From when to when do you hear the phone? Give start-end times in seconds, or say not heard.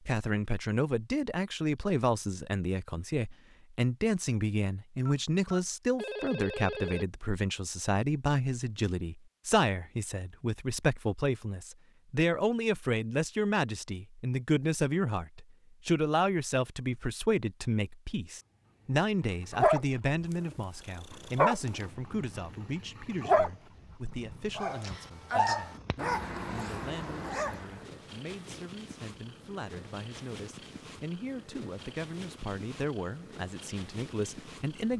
5.0-7.0.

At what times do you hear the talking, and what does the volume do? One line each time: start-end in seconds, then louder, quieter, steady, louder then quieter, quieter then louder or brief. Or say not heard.
0.1-34.9 quieter.